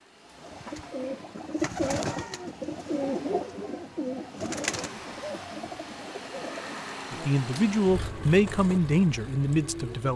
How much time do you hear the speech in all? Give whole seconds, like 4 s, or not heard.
3 s.